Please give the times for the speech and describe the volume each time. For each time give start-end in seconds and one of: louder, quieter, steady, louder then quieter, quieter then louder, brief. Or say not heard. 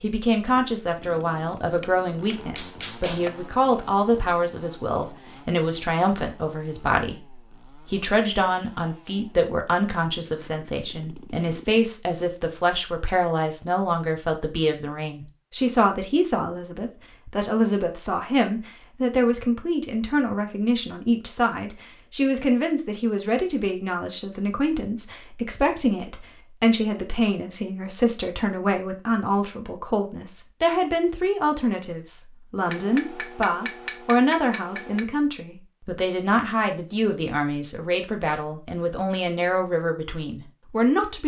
0.0-41.2 steady.